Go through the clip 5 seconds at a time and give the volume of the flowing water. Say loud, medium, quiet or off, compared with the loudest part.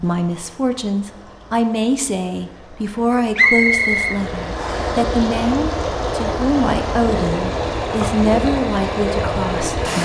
medium, loud.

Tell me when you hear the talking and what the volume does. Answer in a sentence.
The talking can be heard from 0.0 to 10.0 s, at a steady volume.